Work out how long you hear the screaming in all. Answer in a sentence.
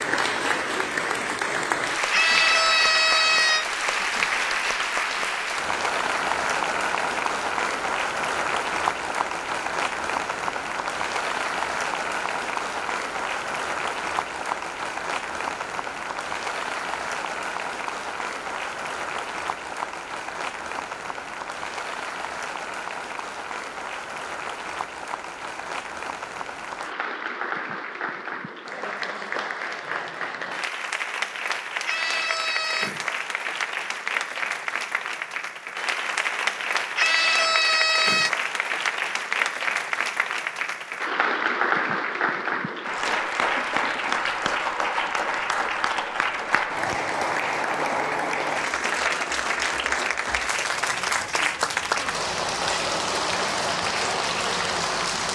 You can hear the screaming for 4 seconds altogether.